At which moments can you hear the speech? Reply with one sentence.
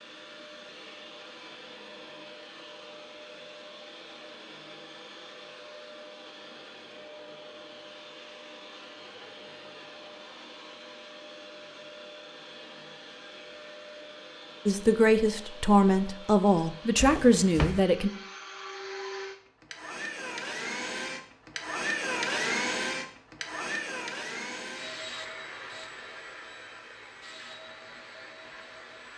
The speech can be heard from 14.7 to 18.1 s.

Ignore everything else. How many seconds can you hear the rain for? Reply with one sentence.
The rain can't be heard in this clip.